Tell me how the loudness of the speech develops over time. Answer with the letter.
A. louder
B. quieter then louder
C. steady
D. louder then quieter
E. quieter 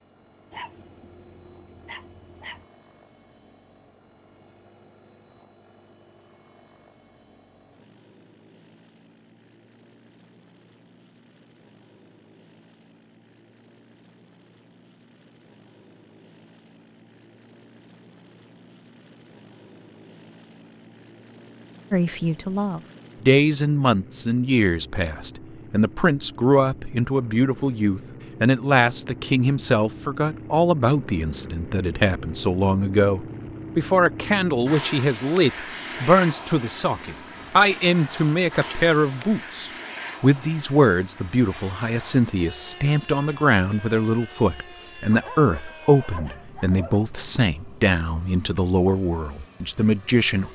C.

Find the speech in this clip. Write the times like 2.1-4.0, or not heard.
21.9-50.5.